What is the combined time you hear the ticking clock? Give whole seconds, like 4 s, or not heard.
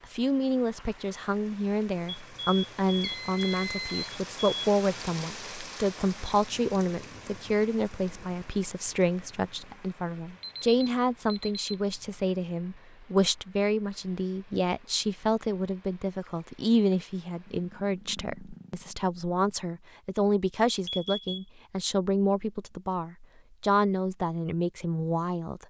not heard.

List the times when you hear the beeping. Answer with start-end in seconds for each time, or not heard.
2.0-4.7, 10.4-11.8, 20.9-21.4.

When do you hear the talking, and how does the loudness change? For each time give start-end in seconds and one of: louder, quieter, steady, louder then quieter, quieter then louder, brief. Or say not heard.
0.1-25.6 steady.